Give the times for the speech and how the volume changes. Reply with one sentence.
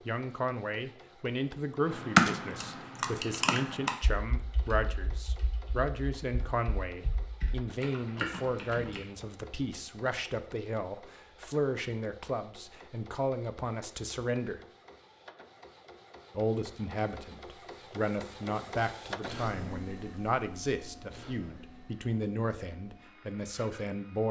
The speech can be heard from 0.1 to 14.6 s, at a steady volume; and from 16.4 to 24.2 s, at a steady volume.